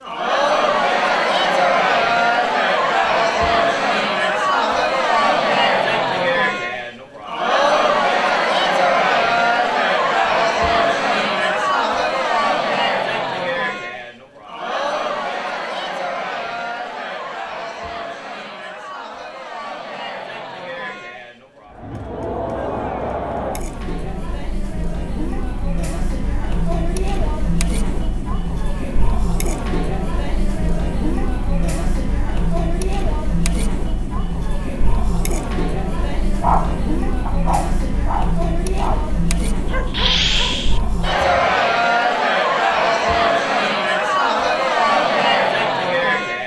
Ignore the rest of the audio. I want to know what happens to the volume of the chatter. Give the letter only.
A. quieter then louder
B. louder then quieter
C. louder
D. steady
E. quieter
A.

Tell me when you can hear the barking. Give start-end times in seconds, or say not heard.
36.4-41.5.